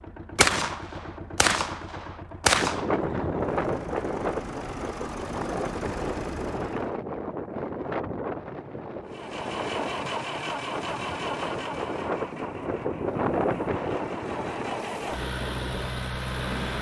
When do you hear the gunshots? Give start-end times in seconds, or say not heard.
0.3-2.9.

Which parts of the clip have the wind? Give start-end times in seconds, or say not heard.
2.5-16.7.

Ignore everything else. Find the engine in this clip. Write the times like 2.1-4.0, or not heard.
0.0-7.0, 9.1-16.7.